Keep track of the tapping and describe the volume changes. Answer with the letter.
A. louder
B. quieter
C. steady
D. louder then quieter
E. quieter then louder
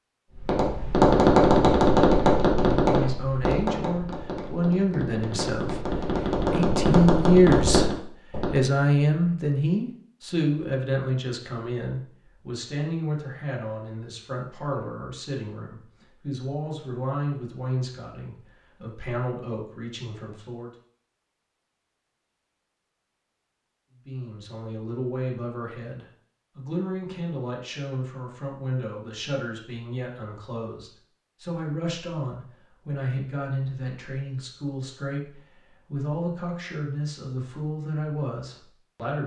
E.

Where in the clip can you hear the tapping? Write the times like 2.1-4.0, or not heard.
0.3-8.6.